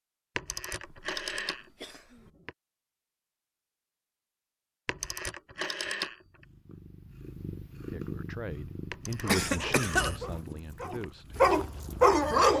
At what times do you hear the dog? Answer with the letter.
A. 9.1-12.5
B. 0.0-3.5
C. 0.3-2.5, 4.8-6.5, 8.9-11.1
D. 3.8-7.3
A.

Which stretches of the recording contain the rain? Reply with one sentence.
You can't hear the rain here.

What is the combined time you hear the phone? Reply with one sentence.
The phone can be heard for 6 seconds in total.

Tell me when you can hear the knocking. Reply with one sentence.
The knocking can't be heard in this clip.